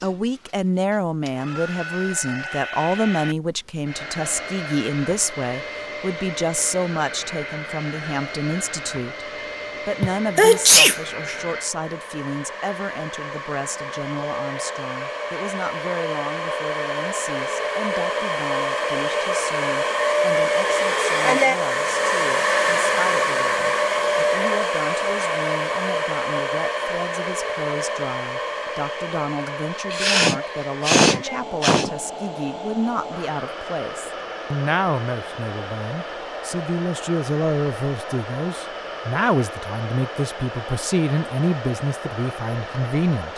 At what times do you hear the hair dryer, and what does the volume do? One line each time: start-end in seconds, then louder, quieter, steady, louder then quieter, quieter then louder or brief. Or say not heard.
0.0-43.3 louder then quieter.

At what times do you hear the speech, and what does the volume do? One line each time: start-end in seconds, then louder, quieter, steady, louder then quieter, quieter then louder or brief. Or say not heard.
0.0-43.3 quieter then louder.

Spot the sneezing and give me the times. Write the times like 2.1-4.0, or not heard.
10.0-10.9, 29.9-31.9.